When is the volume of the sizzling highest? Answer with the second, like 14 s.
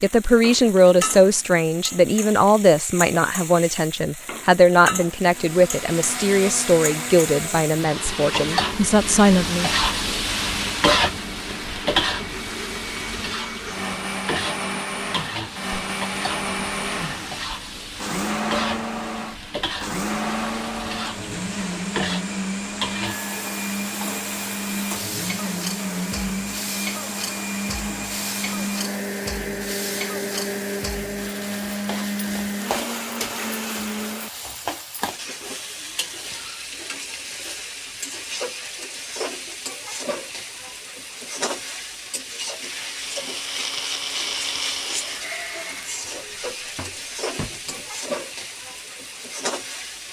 11 s.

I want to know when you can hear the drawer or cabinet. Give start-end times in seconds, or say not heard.
46.3-47.9.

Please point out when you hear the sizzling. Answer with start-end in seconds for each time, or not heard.
0.0-50.0.